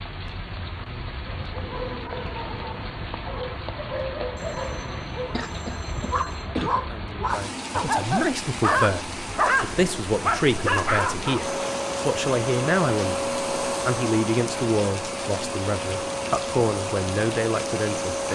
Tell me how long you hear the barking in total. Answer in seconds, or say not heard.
10 s.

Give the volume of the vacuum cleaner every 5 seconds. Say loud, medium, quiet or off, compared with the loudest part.
off, off, loud, loud.